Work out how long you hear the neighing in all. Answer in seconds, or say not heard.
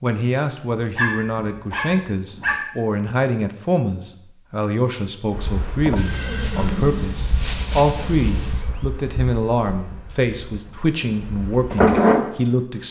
3 s.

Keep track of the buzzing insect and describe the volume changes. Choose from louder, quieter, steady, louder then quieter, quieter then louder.
quieter then louder.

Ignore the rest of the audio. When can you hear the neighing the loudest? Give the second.
7 s.